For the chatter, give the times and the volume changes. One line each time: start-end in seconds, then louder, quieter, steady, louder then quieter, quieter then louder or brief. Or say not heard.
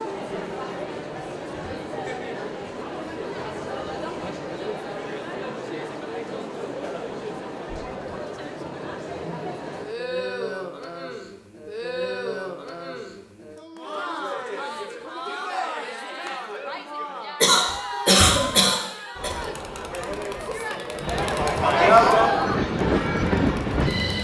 0.0-24.1 louder.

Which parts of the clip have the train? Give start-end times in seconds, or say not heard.
20.9-24.1.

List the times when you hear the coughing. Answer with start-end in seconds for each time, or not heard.
17.4-19.3.